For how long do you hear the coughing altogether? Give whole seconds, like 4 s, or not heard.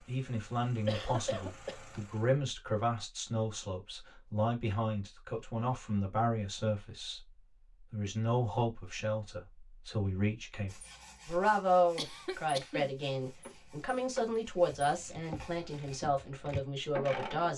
2 s.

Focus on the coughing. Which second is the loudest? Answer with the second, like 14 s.
1 s.